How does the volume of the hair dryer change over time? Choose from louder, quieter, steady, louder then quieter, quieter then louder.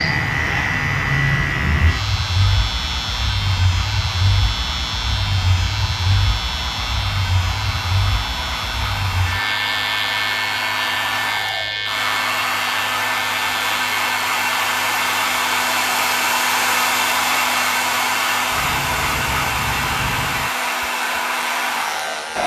louder.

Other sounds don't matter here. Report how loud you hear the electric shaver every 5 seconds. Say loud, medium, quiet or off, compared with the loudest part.
loud, loud, loud, medium, medium.